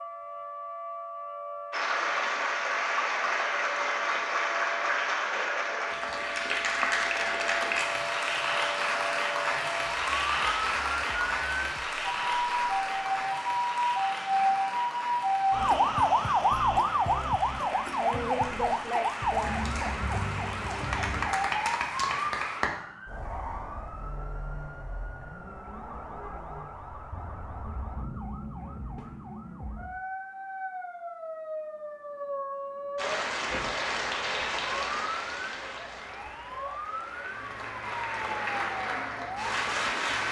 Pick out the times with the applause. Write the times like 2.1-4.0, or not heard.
1.7-22.7, 33.0-40.2.